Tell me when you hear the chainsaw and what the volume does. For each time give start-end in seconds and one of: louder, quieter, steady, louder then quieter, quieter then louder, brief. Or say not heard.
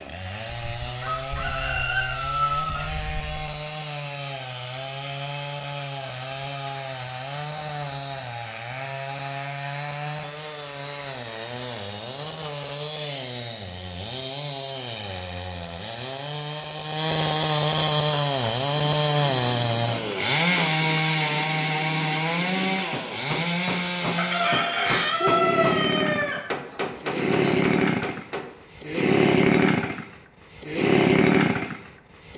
0.0-32.3 louder.